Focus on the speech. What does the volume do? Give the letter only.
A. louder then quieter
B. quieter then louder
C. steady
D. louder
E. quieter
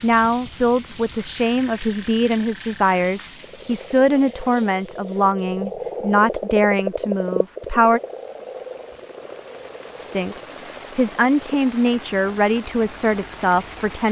C.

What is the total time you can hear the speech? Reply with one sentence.
The speech can be heard for 12 seconds in total.